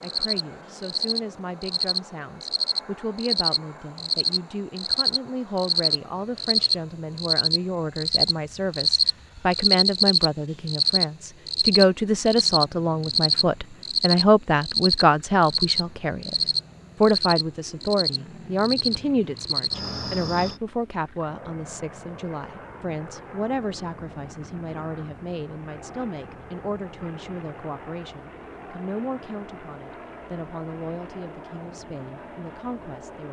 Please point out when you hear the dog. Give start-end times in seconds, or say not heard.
not heard.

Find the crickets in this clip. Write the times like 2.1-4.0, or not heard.
0.0-20.6.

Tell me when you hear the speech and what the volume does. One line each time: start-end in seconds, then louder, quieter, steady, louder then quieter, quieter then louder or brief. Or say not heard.
0.0-16.4 louder
17.0-33.2 quieter.